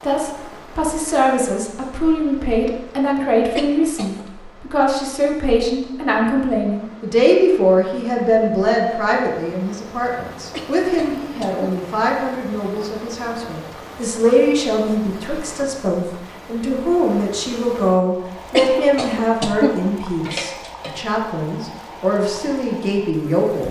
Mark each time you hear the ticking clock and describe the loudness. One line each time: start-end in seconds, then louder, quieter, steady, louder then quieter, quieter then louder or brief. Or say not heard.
not heard.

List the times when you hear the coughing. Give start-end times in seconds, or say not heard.
3.5-4.2, 10.5-11.8, 18.5-21.0.